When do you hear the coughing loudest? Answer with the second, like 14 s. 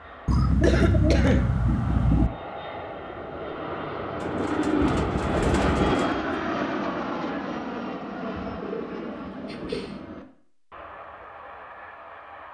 1 s.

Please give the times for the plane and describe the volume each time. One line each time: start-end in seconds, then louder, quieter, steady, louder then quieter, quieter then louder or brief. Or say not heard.
0.0-12.4 louder then quieter.